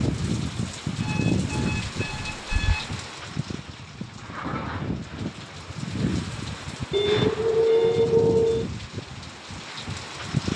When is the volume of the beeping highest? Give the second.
8 s.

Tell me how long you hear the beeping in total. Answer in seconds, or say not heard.
4 s.